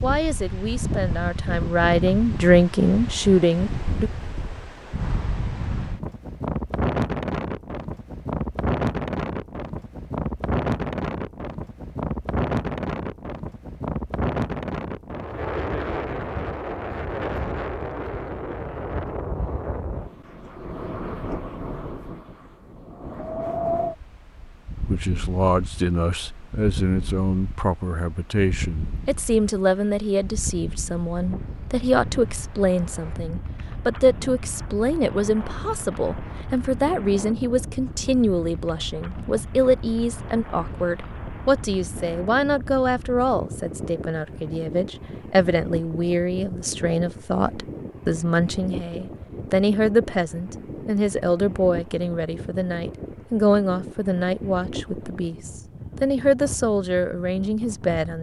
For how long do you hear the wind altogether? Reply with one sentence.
You can hear the wind for 58 seconds altogether.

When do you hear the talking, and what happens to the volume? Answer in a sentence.
You can hear the talking from 0.0 to 4.1 s, getting louder; and from 24.8 to 58.1 s, at a steady volume.